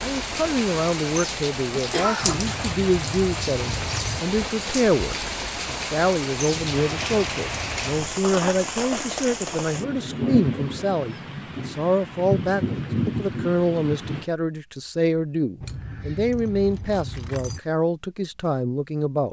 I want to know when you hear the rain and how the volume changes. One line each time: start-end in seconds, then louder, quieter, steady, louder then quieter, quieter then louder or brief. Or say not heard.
0.0-14.2 steady.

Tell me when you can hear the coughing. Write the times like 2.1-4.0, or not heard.
1.9-2.6.